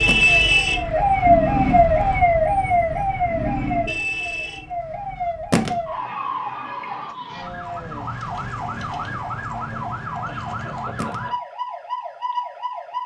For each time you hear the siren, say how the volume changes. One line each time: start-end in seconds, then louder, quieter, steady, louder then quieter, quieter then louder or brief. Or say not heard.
0.0-13.0 quieter.